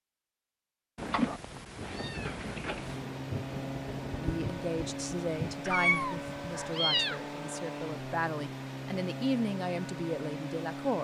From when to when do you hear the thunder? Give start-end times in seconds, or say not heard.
1.8-5.6.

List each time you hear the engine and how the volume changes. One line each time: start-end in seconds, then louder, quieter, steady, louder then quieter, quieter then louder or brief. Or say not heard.
2.8-10.9 steady.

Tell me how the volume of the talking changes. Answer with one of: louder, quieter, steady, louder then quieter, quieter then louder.
quieter then louder.